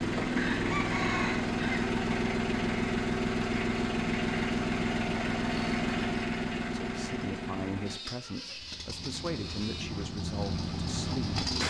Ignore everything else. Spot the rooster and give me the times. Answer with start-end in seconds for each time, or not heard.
0.3-1.9.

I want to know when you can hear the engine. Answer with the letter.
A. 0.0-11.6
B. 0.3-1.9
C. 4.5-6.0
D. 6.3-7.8
A.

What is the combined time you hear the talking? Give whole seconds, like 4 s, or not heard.
5 s.